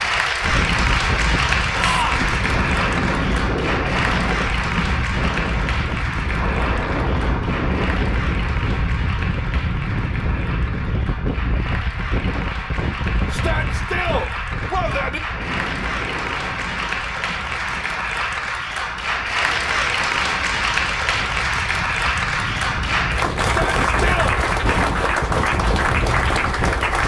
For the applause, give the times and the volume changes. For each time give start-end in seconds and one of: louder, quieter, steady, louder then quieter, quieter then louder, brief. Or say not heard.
0.0-27.0 quieter then louder.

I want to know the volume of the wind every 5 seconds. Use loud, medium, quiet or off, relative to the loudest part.
loud, loud, loud, medium, medium, loud.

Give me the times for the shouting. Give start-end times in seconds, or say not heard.
1.7-2.3, 13.3-15.2, 23.4-24.3.